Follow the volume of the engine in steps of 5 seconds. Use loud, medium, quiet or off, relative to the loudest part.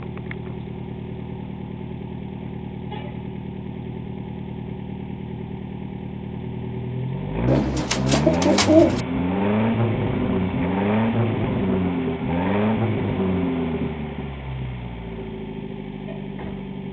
medium, loud, loud, medium.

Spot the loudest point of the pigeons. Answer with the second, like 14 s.
9 s.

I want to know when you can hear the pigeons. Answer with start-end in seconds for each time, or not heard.
7.5-9.0.